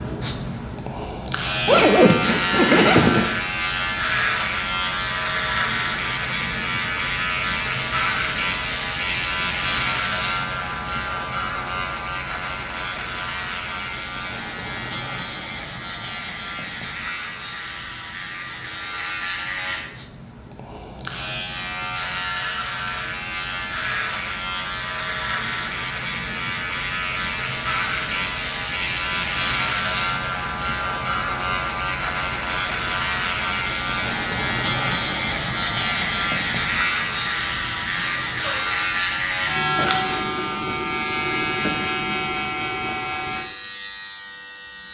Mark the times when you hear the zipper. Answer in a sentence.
The zipper can be heard from 1.6 to 3.4 s.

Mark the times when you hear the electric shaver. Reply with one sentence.
You can hear the electric shaver from 0.0 to 44.8 s.